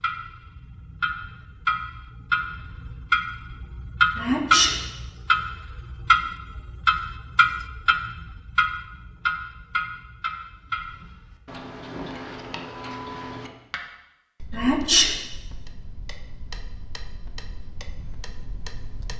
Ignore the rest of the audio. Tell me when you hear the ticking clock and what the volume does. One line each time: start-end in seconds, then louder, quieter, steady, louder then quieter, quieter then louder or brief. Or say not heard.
0.0-19.1 quieter.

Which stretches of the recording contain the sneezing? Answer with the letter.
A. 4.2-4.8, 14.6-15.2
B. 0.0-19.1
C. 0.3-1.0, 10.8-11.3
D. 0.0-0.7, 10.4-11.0
A.